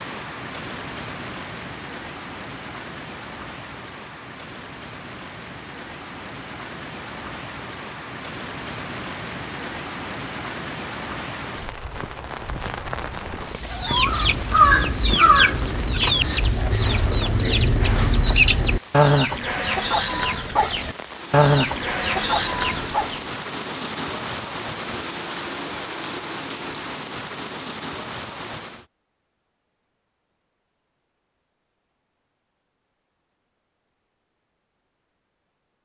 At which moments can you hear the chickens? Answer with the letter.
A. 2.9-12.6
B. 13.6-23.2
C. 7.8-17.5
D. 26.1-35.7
B.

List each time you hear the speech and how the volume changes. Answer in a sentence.
The speech can't be heard in this clip.